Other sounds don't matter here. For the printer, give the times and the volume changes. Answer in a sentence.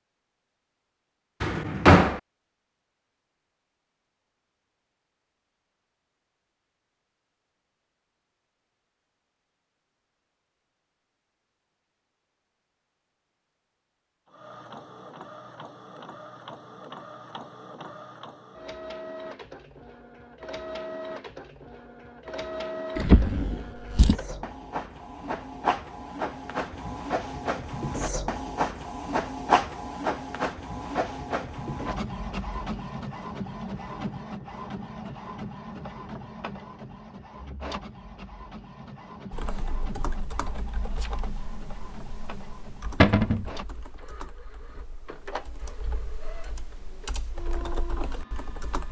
The printer can be heard from 14.2 to 48.8 s, getting louder then quieter.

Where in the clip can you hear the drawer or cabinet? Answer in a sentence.
The drawer or cabinet can be heard from 1.4 to 2.2 s, from 22.9 to 24.1 s and from 43.0 to 43.5 s.